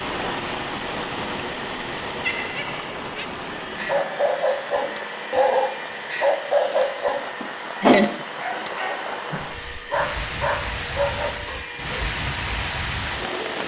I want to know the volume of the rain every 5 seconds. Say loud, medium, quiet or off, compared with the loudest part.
loud, medium, loud.